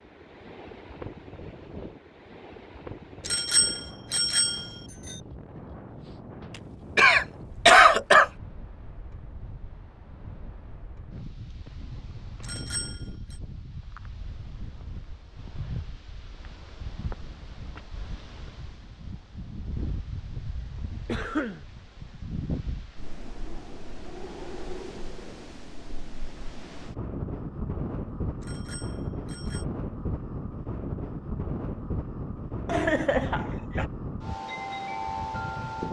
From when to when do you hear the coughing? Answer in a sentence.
You can hear the coughing from 7.0 to 8.3 s, from 21.1 to 21.6 s and from 32.6 to 33.9 s.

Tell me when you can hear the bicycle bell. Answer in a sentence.
The bicycle bell can be heard from 3.2 to 5.2 s, from 12.4 to 13.4 s and from 28.4 to 29.6 s.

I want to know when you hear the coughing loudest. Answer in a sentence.
The loudest moment of the coughing is at 8 seconds.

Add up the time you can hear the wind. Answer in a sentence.
The wind can be heard for 36 seconds in total.